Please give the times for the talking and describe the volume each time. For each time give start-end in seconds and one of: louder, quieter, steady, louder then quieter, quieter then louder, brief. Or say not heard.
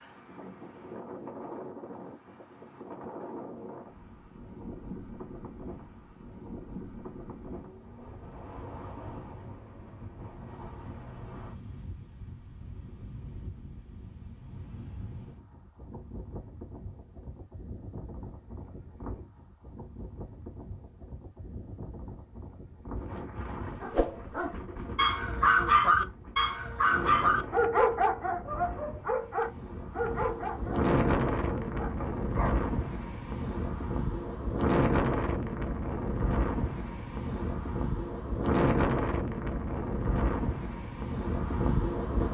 not heard.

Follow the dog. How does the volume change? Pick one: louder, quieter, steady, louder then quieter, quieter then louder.
quieter.